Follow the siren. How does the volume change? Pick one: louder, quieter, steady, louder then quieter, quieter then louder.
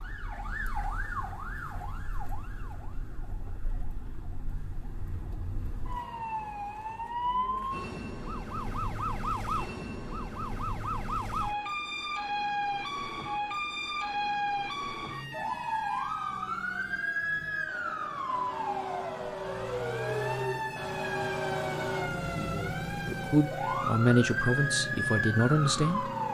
louder.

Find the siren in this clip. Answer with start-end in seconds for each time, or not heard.
0.0-26.3.